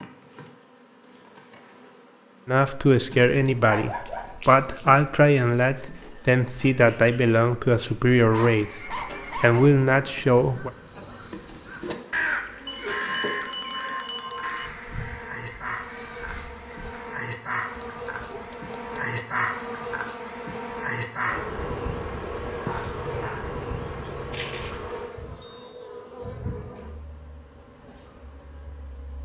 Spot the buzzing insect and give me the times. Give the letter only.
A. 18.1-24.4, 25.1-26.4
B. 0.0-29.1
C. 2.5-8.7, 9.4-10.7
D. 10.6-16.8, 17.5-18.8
B.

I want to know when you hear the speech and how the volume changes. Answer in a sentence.
You can hear the speech from 2.5 to 8.7 s, at a steady volume; and briefly from 9.4 to 10.7 s.